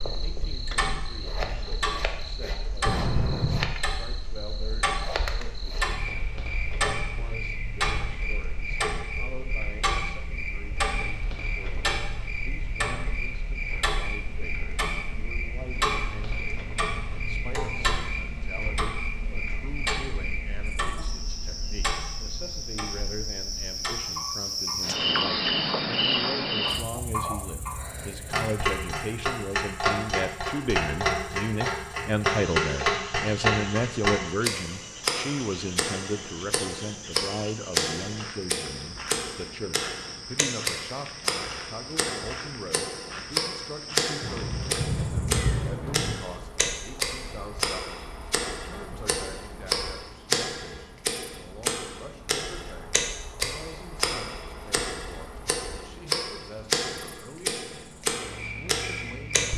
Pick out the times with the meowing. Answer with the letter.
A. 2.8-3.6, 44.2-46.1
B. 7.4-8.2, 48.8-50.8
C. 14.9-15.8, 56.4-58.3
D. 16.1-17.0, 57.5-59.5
A.